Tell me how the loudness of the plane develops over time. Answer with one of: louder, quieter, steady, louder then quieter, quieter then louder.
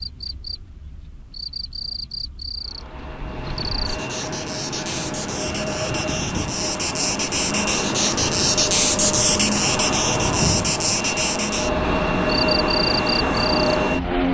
louder.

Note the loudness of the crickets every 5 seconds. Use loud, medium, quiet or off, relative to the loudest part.
medium, loud, loud.